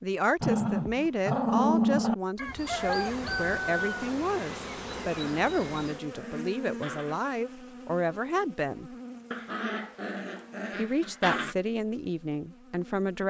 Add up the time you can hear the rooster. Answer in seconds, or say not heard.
2 s.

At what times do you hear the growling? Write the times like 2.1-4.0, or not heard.
0.4-2.1, 5.0-7.2, 9.3-11.6.